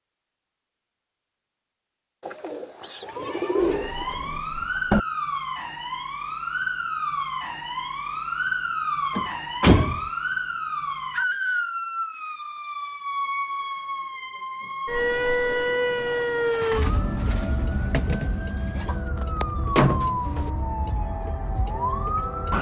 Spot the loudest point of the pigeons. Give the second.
4 s.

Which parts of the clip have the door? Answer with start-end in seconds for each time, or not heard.
3.6-5.0, 9.2-10.0, 19.8-20.5.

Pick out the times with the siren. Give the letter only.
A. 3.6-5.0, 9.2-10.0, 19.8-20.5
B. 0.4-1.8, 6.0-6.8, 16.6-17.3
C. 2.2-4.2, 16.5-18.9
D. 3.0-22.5
D.